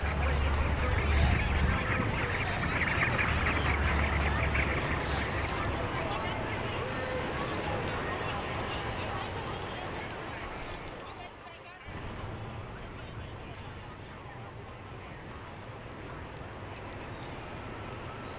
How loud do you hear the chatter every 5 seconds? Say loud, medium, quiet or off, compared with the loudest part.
loud, loud, medium, quiet.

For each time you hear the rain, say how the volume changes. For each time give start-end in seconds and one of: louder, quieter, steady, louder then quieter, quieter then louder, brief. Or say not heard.
0.0-18.3 quieter.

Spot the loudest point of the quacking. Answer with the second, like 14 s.
3 s.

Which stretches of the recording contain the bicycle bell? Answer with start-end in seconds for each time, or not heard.
not heard.